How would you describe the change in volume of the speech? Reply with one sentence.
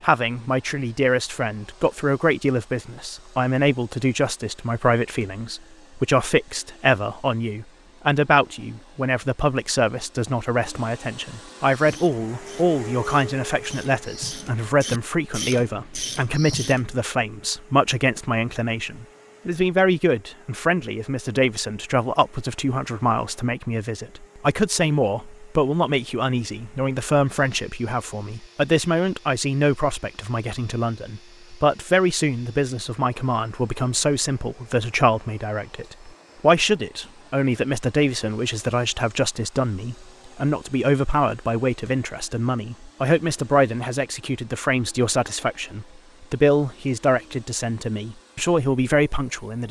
The loudness of the speech stays about the same.